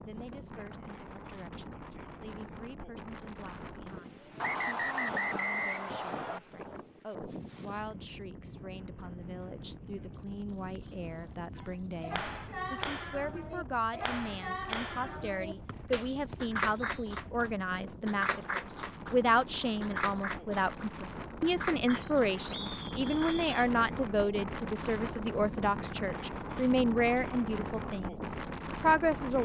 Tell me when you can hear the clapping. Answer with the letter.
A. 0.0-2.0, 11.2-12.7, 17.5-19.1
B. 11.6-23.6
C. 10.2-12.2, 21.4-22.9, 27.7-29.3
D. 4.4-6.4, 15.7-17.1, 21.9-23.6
B.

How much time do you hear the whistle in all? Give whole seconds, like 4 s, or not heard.
5 s.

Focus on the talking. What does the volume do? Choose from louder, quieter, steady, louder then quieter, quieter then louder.
louder.